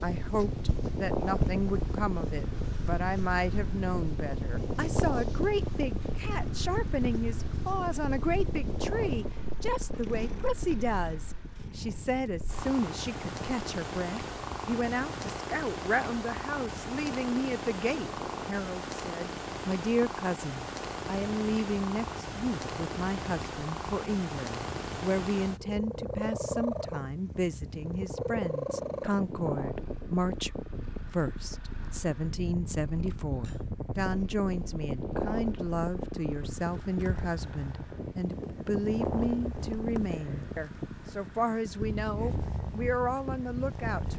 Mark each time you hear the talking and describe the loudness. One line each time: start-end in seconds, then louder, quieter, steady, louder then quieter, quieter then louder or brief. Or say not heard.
0.0-44.1 steady.